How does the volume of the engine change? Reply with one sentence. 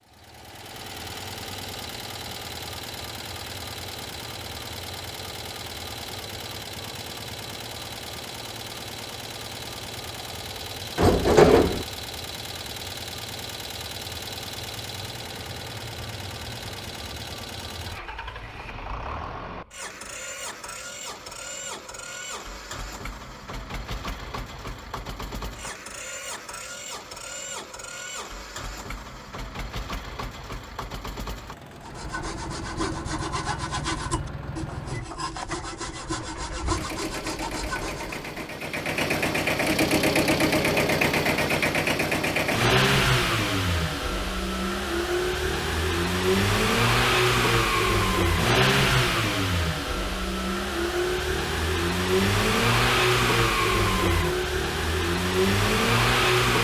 The loudness of the engine goes up.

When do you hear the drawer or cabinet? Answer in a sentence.
The drawer or cabinet can be heard from 10.9 to 11.8 s.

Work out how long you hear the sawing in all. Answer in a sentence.
The sawing can be heard for 7 seconds in total.